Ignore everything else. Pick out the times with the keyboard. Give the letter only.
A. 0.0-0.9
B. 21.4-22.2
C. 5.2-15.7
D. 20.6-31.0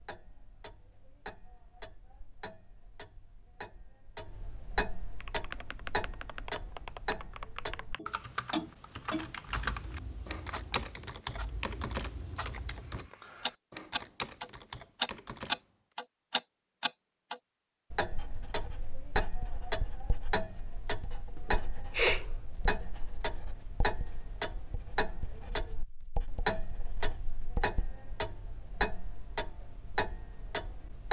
C.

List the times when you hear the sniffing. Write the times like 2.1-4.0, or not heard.
21.4-22.2.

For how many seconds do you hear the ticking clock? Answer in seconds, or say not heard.
31 s.